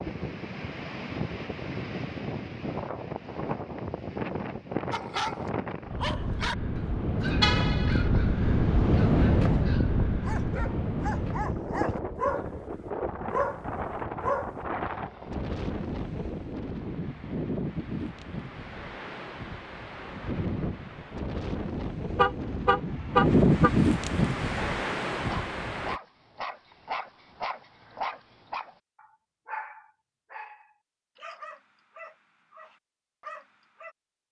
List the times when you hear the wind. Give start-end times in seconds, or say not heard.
0.0-26.0.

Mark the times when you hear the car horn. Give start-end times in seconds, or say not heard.
7.4-8.1, 22.1-23.7.